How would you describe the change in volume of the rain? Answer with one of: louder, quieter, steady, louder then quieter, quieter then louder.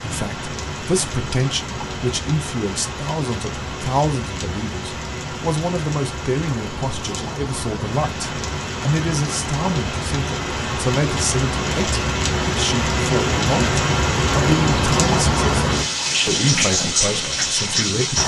louder.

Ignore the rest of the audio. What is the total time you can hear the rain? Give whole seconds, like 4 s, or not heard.
18 s.